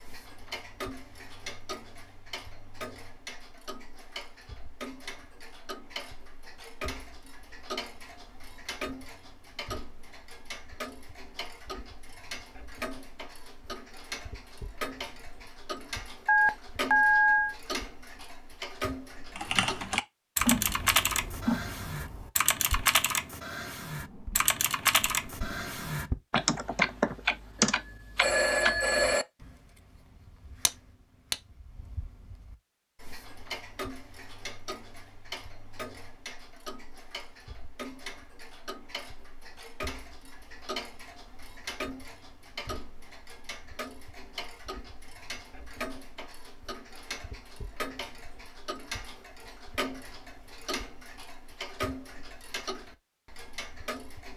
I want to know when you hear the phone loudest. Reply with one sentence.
The volume of the phone peaks at 17 seconds.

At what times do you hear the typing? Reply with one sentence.
The typing can be heard from 19.4 to 27.8 s.